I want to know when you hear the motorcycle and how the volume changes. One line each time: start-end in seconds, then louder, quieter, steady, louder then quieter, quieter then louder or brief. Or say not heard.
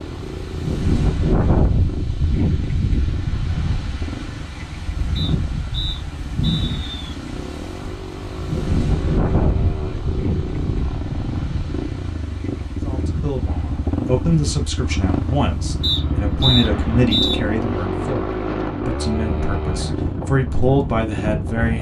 0.0-21.7 louder.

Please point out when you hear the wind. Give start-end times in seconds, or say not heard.
0.0-21.7.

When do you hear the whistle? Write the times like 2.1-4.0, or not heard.
5.2-7.0, 15.8-17.4.